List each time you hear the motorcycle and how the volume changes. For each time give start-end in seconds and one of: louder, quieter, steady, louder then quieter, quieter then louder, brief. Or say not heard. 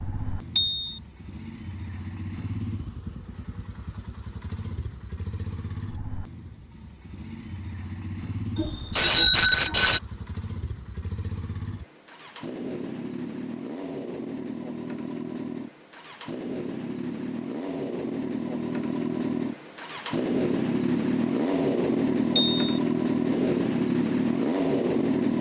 0.0-25.3 louder.